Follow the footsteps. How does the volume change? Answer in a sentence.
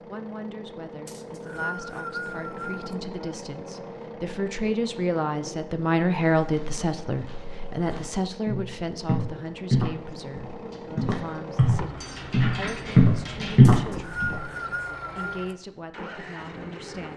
The loudness of the footsteps goes up.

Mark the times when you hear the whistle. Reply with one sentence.
The whistle can be heard from 1.1 to 3.0 s and from 13.6 to 15.6 s.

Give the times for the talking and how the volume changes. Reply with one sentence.
You can hear the talking from 0.0 to 17.1 s, getting louder then quieter.